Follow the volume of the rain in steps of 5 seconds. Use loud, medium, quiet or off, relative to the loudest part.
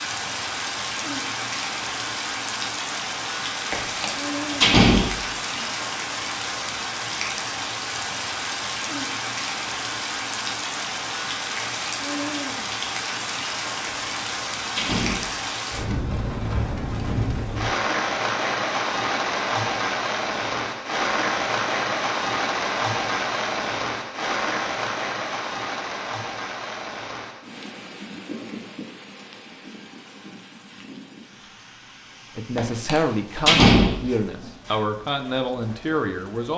loud, loud, loud, loud, loud, medium, quiet, quiet.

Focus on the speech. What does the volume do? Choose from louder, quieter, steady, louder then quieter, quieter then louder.
steady.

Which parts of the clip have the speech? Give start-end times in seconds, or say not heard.
32.4-36.5.